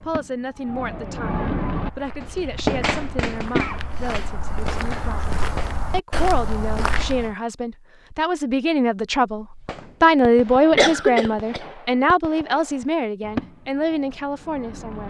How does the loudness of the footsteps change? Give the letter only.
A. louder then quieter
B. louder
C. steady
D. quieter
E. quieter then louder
B.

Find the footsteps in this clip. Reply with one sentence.
You can hear the footsteps from 1.7 to 7.3 s.